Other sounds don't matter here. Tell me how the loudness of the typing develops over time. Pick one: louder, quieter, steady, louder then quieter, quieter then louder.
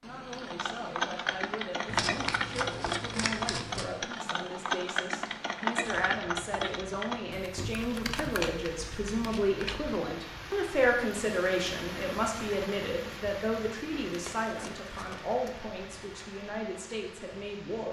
quieter.